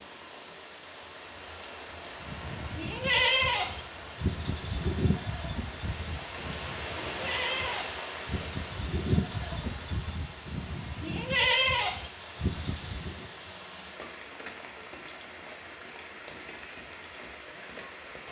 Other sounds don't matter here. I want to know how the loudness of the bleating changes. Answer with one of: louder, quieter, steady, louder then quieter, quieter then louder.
quieter then louder.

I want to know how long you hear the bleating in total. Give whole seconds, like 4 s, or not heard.
11 s.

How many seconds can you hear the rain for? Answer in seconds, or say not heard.
18 s.